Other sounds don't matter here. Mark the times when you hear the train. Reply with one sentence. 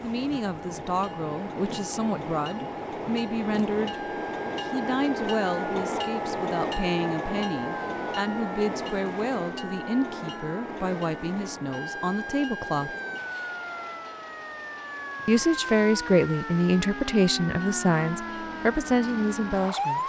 You can hear the train from 0.0 to 20.0 s.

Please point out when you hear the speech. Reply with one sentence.
You can hear the speech from 0.0 to 12.9 s and from 15.2 to 20.0 s.